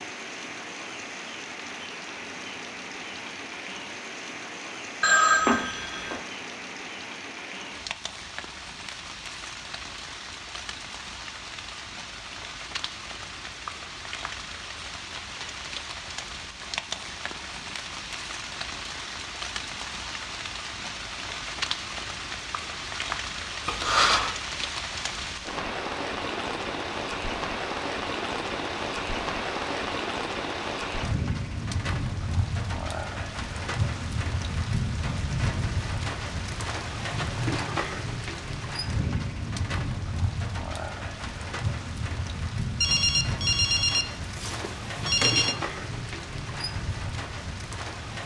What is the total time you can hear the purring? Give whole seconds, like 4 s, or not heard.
not heard.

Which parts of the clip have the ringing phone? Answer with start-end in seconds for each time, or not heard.
5.0-6.2, 23.6-24.3, 42.8-45.5.